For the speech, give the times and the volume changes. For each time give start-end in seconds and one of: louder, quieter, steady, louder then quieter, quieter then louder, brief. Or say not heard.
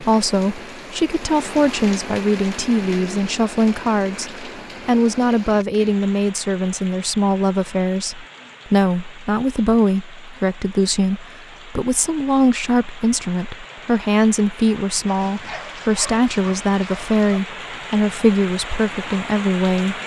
0.0-20.0 steady.